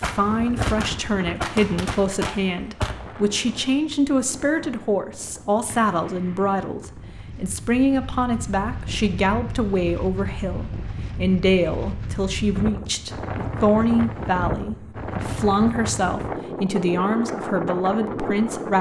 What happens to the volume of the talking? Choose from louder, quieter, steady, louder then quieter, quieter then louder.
steady.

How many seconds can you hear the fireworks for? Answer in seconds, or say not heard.
7 s.